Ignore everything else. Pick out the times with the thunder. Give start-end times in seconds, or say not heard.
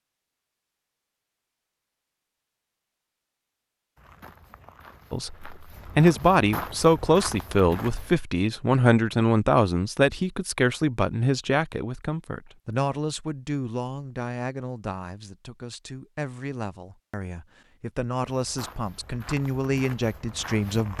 not heard.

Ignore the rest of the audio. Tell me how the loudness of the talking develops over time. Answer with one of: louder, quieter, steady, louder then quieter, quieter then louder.
quieter then louder.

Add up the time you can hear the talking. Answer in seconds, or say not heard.
16 s.